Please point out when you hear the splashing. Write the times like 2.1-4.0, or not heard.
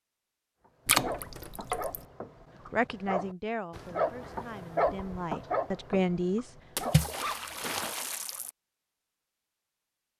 0.8-2.0, 6.8-8.5.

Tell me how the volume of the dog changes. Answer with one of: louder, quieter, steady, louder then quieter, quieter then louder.
louder then quieter.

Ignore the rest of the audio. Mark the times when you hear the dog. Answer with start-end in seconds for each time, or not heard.
0.7-7.8.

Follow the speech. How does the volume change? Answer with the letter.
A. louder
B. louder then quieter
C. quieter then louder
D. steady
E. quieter
C.